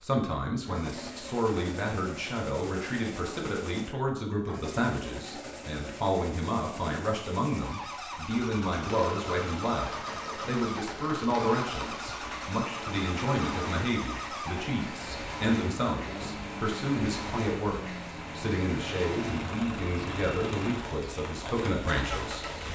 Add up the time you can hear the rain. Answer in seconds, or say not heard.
14 s.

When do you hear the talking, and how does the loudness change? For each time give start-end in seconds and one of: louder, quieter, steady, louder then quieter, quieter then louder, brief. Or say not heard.
0.0-22.4 steady.